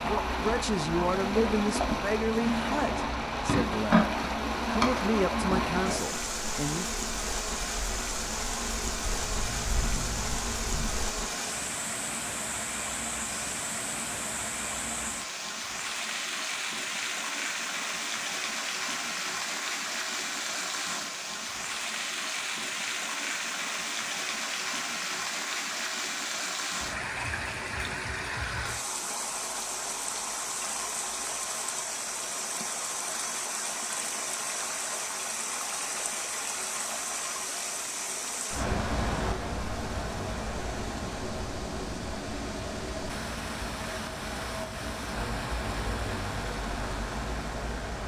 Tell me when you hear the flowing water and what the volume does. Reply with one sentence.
You can hear the flowing water from 0.0 to 48.0 s, at a steady volume.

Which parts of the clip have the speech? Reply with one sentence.
The speech can be heard from 0.1 to 7.0 s.